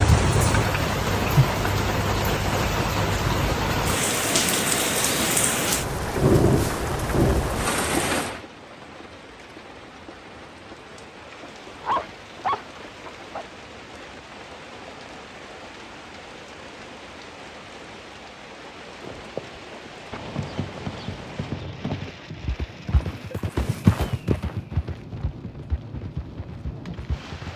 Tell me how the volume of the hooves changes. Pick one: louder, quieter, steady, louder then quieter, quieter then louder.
louder then quieter.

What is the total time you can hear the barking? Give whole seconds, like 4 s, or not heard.
2 s.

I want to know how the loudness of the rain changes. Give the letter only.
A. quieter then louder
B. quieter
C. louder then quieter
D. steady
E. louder
B.